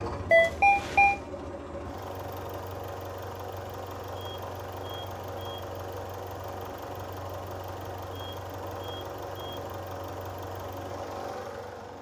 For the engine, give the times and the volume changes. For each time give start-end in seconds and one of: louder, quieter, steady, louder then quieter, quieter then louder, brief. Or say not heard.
0.0-11.9 steady.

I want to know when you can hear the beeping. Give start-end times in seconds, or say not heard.
0.3-1.2, 4.1-5.7, 8.1-9.6.